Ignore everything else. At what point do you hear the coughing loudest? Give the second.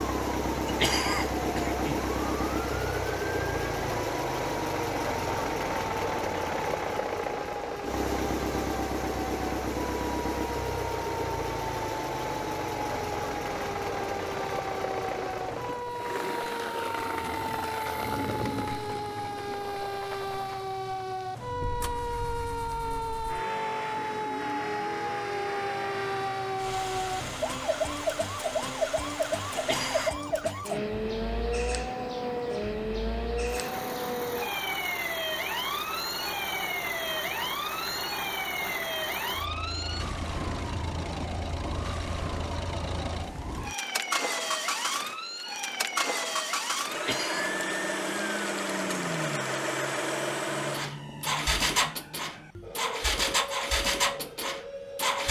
1 s.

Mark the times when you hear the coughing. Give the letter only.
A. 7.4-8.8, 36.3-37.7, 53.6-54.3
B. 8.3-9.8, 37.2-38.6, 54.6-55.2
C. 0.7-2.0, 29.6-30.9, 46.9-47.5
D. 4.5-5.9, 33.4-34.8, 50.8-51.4
C.